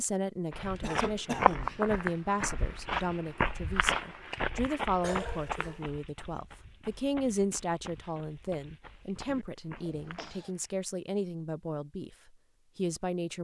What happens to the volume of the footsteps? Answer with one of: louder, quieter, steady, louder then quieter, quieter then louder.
quieter.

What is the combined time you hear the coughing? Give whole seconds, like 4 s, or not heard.
3 s.